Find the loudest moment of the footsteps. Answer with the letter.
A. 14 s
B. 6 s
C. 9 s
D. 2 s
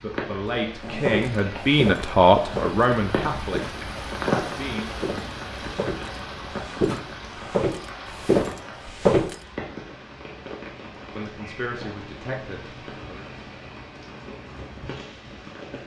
C.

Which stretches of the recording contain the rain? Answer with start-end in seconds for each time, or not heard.
0.0-15.8.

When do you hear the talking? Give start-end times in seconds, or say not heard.
0.0-5.0, 11.1-13.3.